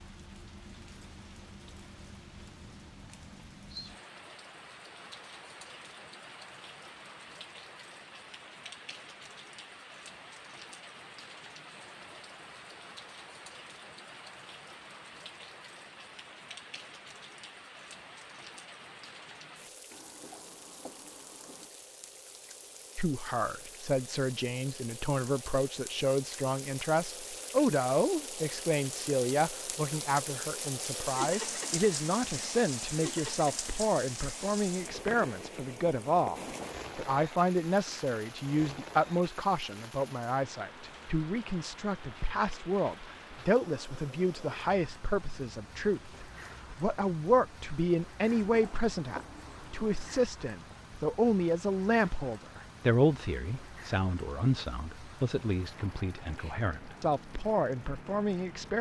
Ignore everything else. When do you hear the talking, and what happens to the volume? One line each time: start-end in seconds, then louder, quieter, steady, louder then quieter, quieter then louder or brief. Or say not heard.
22.9-58.7 steady.